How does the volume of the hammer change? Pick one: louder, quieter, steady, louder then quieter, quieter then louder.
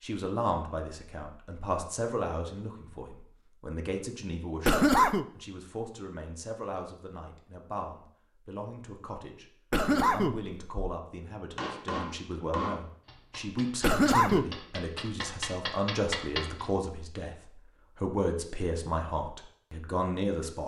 quieter then louder.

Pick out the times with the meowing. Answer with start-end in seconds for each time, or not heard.
not heard.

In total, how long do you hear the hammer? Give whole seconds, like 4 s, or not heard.
5 s.